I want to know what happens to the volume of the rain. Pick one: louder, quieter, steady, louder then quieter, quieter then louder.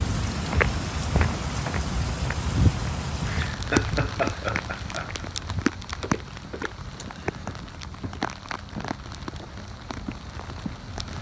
quieter.